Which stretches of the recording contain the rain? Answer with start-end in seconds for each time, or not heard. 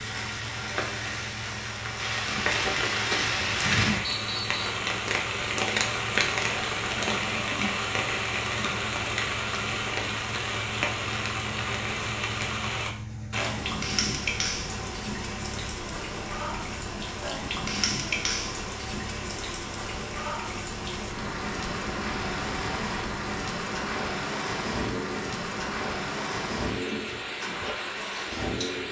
0.0-28.8.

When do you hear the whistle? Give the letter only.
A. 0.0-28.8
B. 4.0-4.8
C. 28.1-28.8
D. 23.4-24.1
B.